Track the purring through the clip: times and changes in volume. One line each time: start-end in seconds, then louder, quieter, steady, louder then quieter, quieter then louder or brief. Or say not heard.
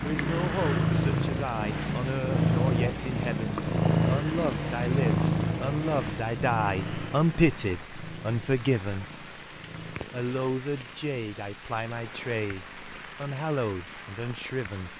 0.0-14.9 quieter.